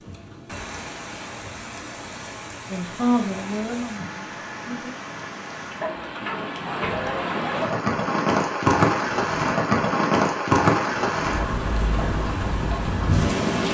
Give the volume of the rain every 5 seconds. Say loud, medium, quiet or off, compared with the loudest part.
quiet, loud, loud.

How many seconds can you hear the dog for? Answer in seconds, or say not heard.
2 s.